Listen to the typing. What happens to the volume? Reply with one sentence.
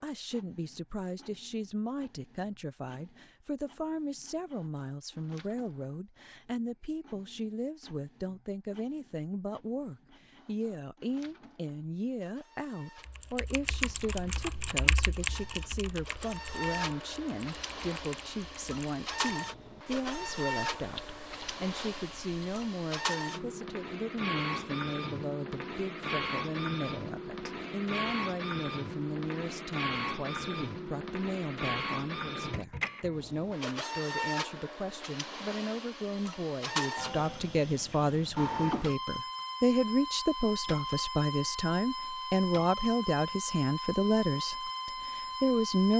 The volume of the typing goes down, then up.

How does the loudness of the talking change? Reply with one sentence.
The loudness of the talking goes up.